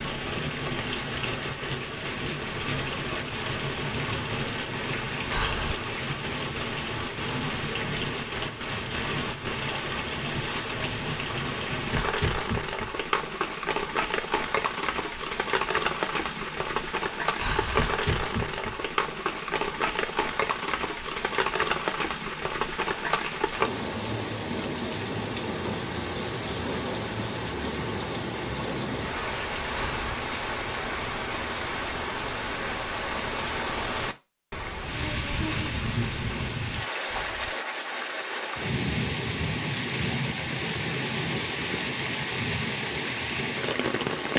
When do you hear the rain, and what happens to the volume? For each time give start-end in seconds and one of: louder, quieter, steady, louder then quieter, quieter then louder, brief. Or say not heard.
0.0-44.3 steady.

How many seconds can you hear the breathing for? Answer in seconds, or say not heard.
2 s.